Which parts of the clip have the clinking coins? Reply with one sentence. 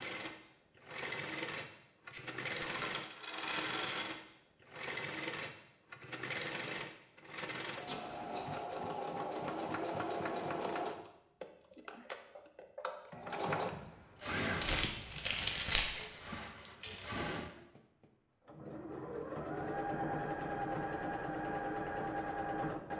The clinking coins can be heard from 2.1 to 4.0 s, from 7.8 to 8.6 s and from 15.8 to 17.1 s.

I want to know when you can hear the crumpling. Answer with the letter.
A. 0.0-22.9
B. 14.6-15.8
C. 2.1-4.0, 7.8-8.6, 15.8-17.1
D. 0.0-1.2
B.